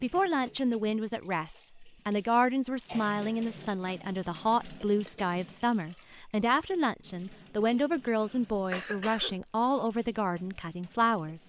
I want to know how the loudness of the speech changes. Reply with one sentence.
The volume of the speech stays about the same.